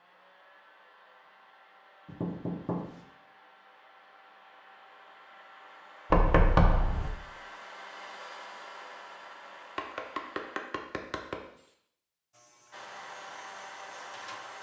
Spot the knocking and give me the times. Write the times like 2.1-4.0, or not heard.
2.0-3.0, 6.1-7.1, 9.8-11.7.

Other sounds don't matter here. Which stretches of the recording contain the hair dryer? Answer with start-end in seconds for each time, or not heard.
0.0-10.6, 12.7-14.5.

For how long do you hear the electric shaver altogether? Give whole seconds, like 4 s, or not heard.
2 s.